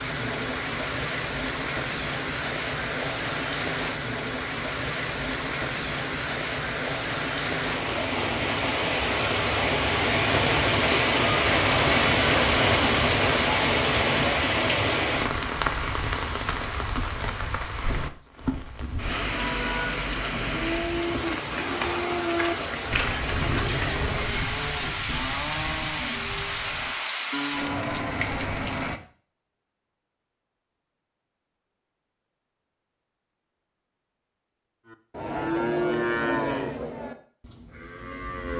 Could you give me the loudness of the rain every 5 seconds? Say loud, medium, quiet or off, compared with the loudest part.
medium, medium, loud, medium, medium, medium, off, off.